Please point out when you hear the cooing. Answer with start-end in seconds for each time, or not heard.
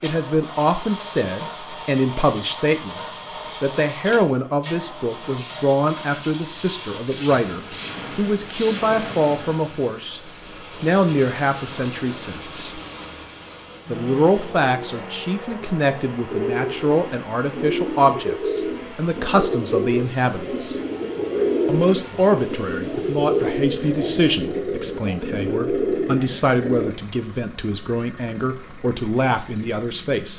16.3-26.9.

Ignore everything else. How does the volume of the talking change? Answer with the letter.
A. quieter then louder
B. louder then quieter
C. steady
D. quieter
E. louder
C.